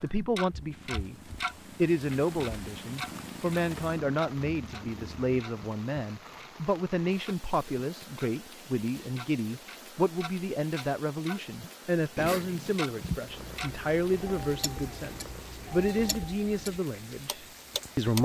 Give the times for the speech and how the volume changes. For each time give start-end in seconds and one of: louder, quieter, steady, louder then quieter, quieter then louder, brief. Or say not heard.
0.0-1.1 brief
1.8-18.2 steady.